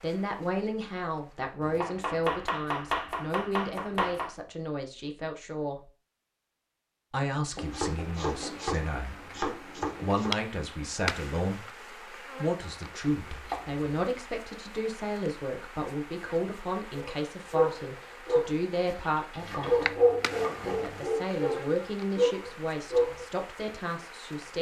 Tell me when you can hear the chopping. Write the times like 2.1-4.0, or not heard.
1.6-4.3, 7.5-10.3, 13.2-13.8, 19.4-20.9.